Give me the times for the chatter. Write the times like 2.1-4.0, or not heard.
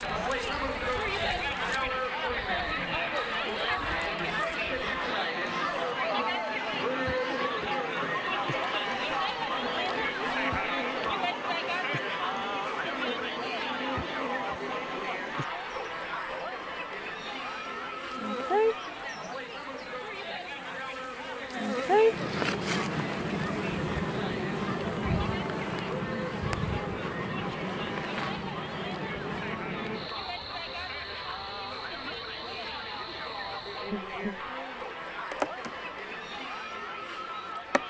0.0-37.8.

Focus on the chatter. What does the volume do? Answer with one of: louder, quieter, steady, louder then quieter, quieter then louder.
quieter.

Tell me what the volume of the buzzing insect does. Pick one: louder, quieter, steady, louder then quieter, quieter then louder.
louder then quieter.